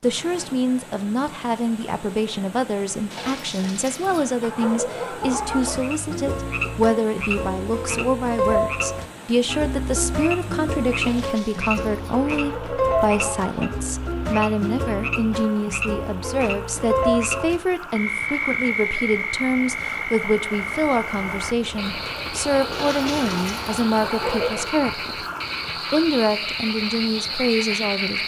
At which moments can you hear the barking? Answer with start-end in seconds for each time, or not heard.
3.1-5.8, 11.0-13.7, 22.7-24.6.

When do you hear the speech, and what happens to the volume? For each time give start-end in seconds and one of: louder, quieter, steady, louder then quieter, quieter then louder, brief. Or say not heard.
0.0-25.1 steady
25.9-28.2 brief.